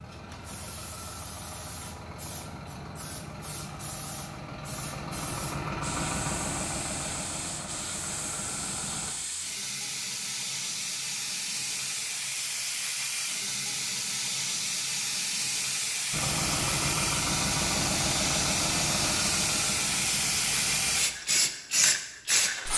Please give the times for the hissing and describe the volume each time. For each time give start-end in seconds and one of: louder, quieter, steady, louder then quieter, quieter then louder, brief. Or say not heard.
0.0-22.7 louder.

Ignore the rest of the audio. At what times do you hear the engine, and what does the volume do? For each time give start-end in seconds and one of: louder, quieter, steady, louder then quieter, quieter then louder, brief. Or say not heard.
0.0-9.2 louder then quieter
16.1-21.1 quieter.